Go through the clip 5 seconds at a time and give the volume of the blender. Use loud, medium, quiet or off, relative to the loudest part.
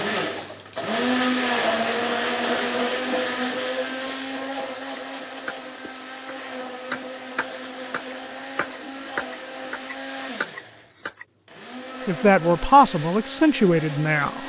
loud, medium, medium.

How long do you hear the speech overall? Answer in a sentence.
The speech can be heard for 2 seconds in total.